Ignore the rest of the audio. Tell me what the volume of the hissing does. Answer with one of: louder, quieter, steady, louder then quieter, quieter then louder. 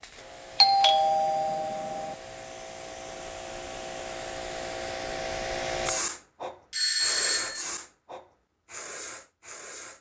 louder then quieter.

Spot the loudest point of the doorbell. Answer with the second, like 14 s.
1 s.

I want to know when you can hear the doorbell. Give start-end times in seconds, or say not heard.
0.6-2.1, 6.7-7.7.